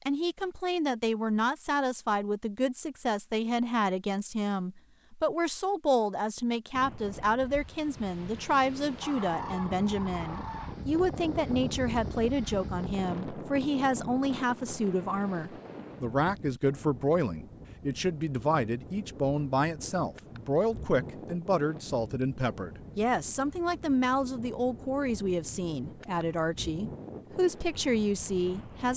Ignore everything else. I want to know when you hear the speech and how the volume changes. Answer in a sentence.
You can hear the speech from 0.1 to 28.9 s, at a steady volume.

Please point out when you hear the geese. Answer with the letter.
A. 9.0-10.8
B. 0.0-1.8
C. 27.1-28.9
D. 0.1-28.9
A.